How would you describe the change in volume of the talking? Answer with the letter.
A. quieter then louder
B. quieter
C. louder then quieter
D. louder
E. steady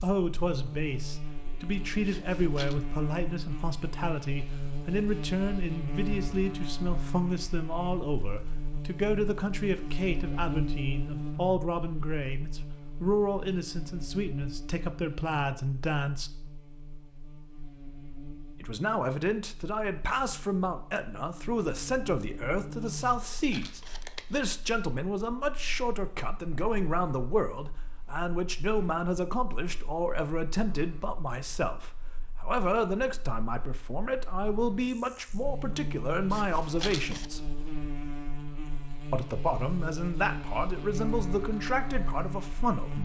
E.